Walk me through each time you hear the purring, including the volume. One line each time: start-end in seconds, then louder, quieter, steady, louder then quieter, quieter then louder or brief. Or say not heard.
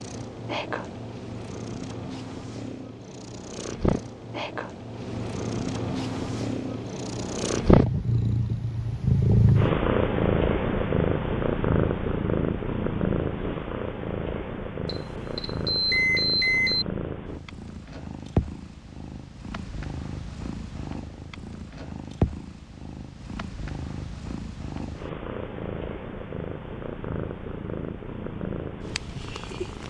0.0-29.8 louder then quieter.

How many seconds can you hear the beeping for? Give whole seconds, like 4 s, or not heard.
2 s.